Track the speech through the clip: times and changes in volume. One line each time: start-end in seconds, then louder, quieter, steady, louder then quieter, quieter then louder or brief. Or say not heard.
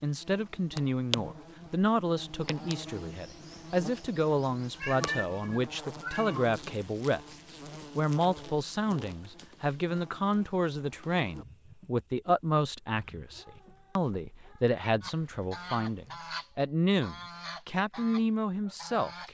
0.0-19.3 steady.